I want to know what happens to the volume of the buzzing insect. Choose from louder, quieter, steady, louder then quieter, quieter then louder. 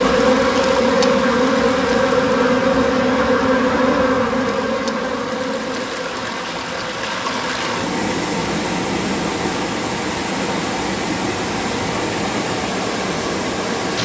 quieter.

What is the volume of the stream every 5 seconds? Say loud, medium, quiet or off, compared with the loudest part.
medium, loud, loud.